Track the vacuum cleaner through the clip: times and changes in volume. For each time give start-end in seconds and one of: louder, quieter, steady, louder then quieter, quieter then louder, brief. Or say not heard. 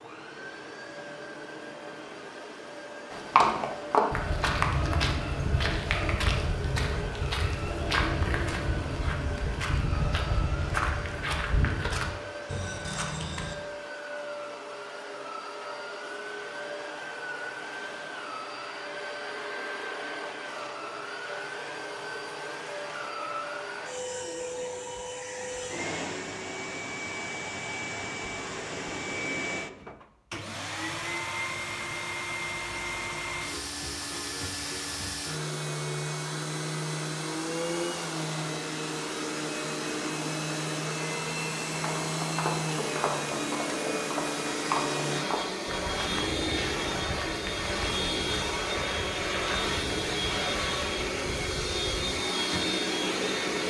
0.0-53.6 louder.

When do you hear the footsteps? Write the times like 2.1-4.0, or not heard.
3.1-13.6, 41.7-52.2.